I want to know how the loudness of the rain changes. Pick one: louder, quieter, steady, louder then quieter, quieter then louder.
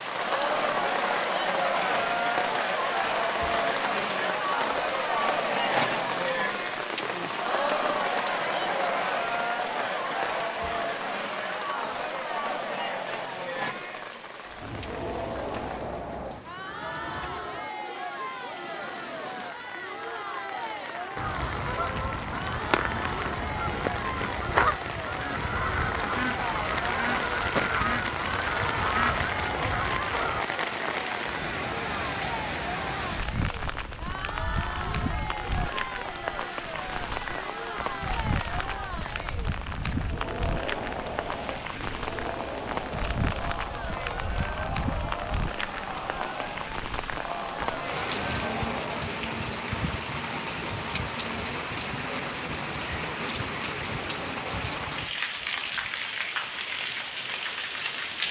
quieter then louder.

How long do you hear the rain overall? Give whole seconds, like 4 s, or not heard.
58 s.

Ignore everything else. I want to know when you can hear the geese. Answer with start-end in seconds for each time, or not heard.
21.1-30.4.